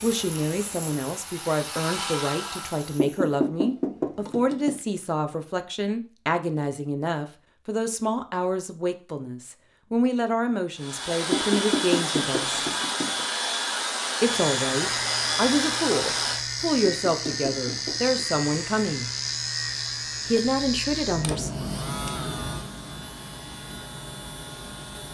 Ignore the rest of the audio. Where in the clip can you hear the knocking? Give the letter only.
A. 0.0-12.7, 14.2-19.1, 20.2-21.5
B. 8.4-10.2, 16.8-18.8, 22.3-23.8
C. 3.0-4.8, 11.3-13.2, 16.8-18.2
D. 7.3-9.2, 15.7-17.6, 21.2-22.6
C.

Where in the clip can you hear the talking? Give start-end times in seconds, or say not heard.
0.0-12.7, 14.2-19.1, 20.2-21.5.